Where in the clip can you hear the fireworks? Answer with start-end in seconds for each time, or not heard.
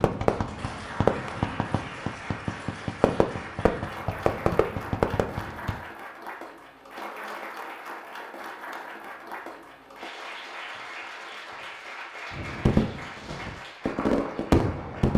0.0-5.8, 12.3-15.1.